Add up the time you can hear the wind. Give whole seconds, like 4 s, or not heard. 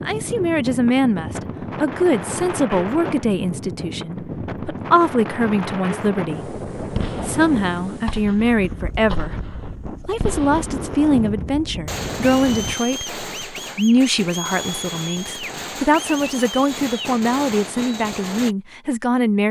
13 s.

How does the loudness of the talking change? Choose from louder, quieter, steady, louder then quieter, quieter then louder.
steady.